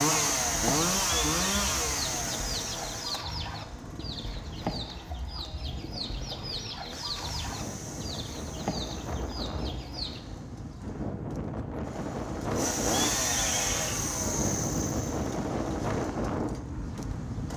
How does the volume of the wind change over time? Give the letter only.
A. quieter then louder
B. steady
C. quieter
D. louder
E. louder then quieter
D.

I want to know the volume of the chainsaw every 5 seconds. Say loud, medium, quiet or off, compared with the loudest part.
loud, quiet, loud, medium.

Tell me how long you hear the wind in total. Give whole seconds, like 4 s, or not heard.
17 s.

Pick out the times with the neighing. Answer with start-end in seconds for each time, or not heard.
1.1-1.7, 13.0-14.1.